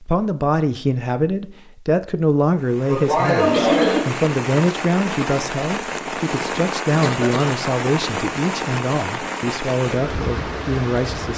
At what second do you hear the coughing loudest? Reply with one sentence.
The loudest moment of the coughing is at 4 seconds.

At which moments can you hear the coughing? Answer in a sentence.
You can hear the coughing from 2.9 to 4.0 s and from 7.0 to 7.5 s.